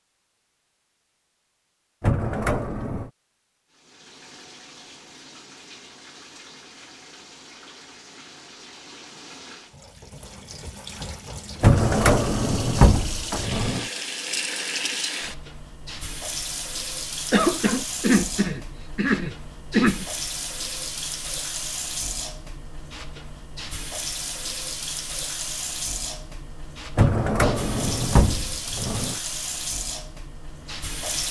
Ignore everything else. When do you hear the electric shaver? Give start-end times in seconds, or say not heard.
not heard.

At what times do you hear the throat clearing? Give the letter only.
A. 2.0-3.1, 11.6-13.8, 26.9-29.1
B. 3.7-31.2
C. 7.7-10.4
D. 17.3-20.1
D.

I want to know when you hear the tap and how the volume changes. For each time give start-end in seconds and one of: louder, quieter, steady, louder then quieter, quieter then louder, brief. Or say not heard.
3.7-31.2 louder.